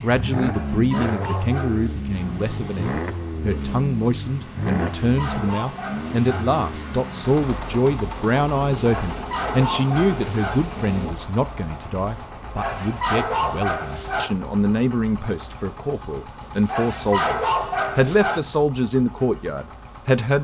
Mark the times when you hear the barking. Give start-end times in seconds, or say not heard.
0.5-2.0, 4.7-6.5, 8.8-10.6, 12.6-14.3, 16.6-18.4.